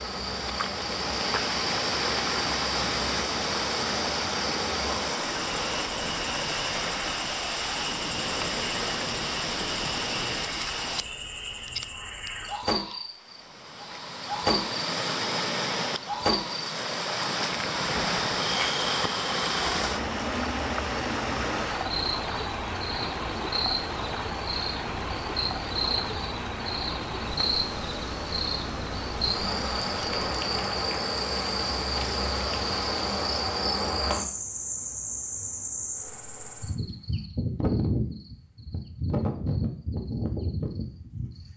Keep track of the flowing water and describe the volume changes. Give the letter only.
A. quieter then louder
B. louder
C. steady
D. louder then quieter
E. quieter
E.